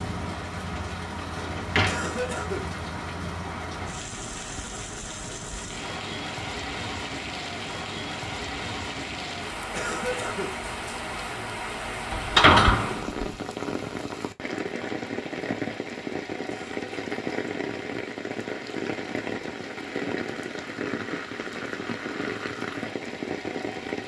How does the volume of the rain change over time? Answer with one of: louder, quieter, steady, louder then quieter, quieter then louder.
steady.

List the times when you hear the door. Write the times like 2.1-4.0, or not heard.
1.4-2.1, 12.1-13.3.